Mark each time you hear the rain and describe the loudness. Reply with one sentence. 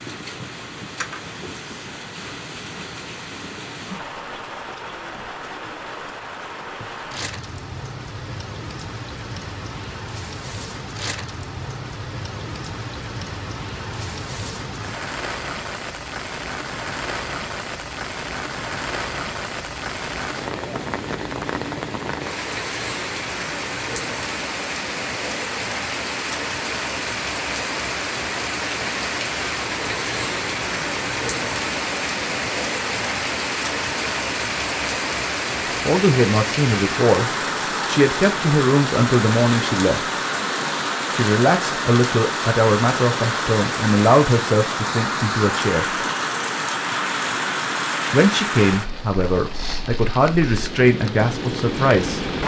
You can hear the rain from 0.0 to 52.4 s, getting louder.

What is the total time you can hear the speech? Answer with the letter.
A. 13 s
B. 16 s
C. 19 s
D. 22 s
A.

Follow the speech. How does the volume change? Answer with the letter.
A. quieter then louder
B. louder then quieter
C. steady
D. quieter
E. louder
C.